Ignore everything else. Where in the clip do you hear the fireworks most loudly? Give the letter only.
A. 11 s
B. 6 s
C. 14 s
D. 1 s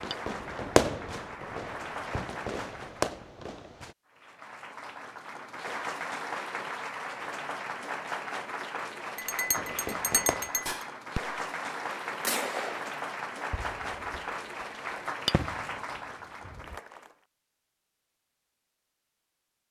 D.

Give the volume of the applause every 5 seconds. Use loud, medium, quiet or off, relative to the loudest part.
medium, loud, loud, loud.